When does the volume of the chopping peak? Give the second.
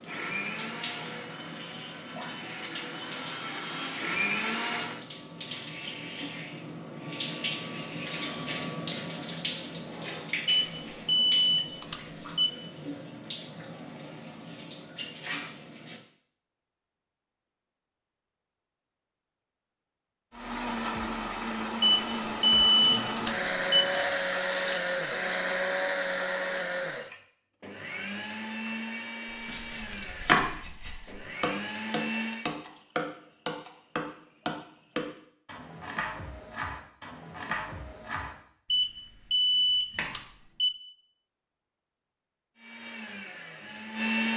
30 s.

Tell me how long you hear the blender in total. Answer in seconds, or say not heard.
19 s.